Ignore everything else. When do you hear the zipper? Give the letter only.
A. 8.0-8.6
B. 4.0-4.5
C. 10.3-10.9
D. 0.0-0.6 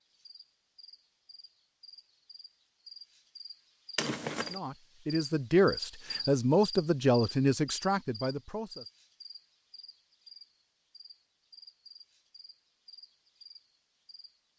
B.